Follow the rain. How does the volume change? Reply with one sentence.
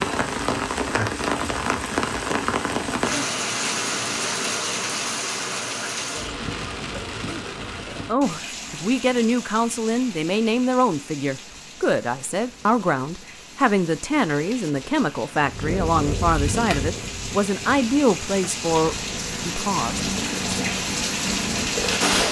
The volume of the rain goes down, then up.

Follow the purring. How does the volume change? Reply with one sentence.
The loudness of the purring goes down, then up.